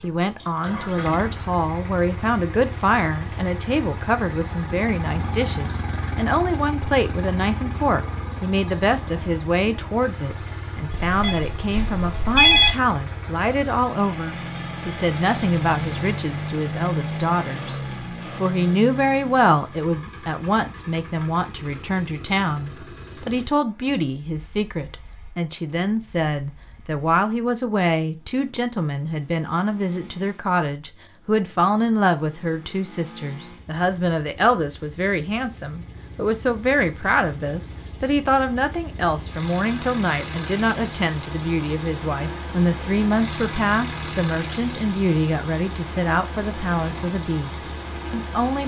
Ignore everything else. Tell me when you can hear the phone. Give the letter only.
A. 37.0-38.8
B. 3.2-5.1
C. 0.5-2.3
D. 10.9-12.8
D.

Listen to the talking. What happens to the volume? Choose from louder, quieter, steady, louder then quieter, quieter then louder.
steady.